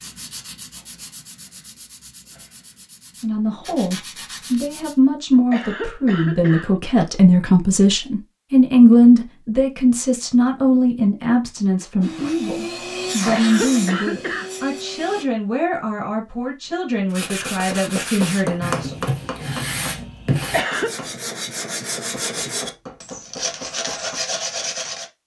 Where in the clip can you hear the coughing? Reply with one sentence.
The coughing can be heard from 5.3 to 6.7 s, from 13.1 to 14.5 s and from 20.4 to 20.9 s.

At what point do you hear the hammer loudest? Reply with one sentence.
The volume of the hammer peaks at 19 seconds.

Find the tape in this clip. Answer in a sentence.
You can't hear the tape here.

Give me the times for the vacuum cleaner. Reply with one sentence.
You can hear the vacuum cleaner from 12.0 to 15.2 s.